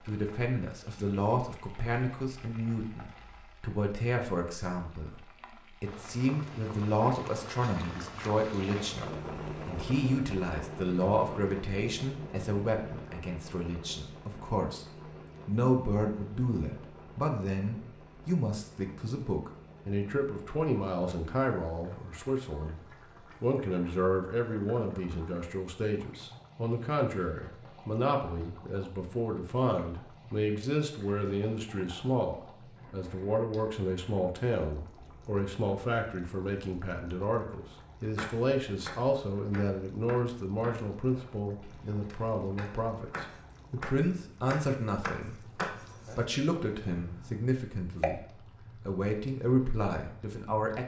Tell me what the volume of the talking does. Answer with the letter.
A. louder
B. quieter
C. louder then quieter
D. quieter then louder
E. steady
E.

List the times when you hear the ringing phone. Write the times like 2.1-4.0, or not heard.
not heard.